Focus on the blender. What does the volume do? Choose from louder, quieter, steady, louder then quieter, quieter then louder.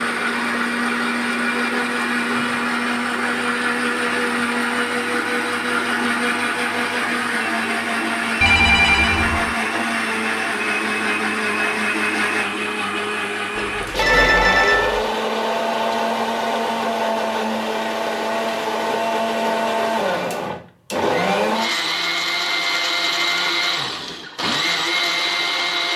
steady.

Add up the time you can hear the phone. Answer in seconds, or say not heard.
3 s.